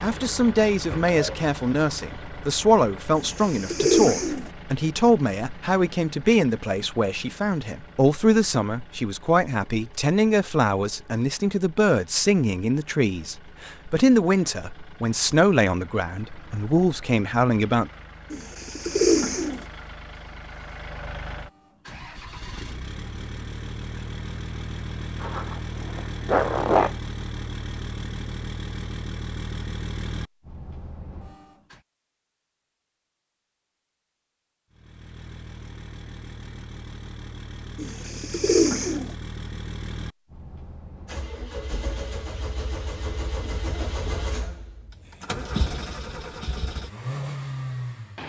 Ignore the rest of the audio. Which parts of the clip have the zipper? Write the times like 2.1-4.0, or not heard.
0.9-1.5, 25.2-26.9.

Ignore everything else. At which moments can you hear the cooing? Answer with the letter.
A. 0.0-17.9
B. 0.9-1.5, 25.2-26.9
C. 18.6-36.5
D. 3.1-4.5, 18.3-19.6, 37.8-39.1
D.